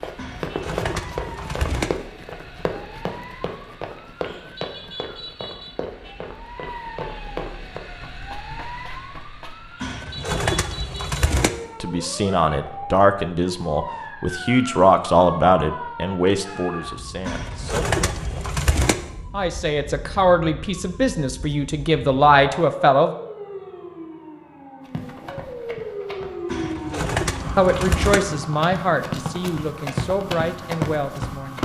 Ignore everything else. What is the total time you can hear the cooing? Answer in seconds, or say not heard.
7 s.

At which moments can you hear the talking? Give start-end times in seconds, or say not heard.
11.8-18.3, 19.3-23.1, 27.6-31.5.